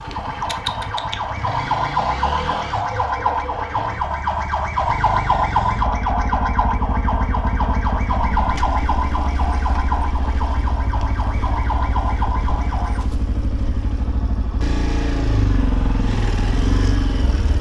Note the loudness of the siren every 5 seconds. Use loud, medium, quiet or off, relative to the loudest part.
loud, loud, medium, off.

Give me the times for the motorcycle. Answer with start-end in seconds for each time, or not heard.
0.0-17.5.